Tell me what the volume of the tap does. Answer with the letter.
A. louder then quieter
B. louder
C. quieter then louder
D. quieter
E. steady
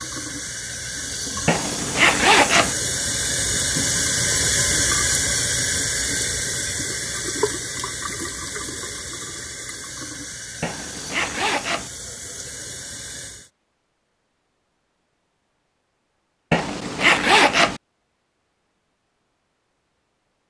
A.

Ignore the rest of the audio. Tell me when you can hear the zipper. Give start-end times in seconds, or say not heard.
1.4-2.8, 10.6-11.9, 16.5-17.8.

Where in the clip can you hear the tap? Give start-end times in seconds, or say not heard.
0.0-13.5.